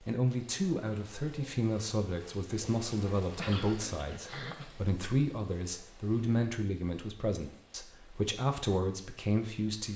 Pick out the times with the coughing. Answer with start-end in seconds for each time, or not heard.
3.3-4.7.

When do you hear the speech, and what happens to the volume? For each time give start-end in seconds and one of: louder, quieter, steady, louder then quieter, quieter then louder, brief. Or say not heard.
0.0-9.9 steady.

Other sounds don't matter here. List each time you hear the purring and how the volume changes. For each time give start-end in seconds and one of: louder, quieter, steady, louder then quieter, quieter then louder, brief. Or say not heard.
not heard.